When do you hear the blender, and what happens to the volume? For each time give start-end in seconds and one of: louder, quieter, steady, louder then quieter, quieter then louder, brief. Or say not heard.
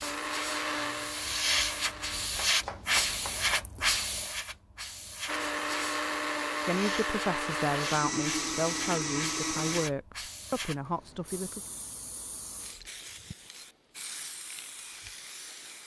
0.0-2.3 brief
5.2-9.9 steady.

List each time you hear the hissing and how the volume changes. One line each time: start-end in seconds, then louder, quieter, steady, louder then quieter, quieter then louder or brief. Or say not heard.
0.0-15.8 quieter.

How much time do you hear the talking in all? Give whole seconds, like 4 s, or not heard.
5 s.